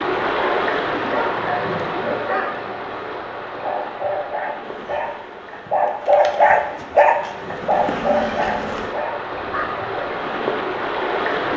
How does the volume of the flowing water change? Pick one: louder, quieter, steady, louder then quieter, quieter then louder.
quieter then louder.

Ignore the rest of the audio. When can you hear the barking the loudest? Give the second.
6 s.